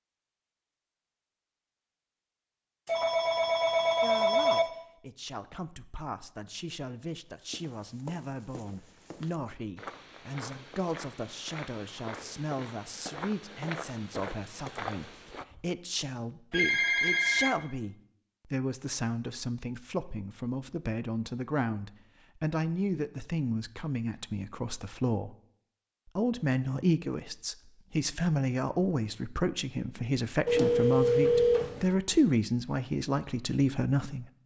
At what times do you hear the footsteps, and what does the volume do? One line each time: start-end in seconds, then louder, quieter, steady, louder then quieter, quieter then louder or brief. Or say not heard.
7.1-15.6 louder.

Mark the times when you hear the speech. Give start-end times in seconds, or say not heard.
4.0-25.4, 26.1-34.2.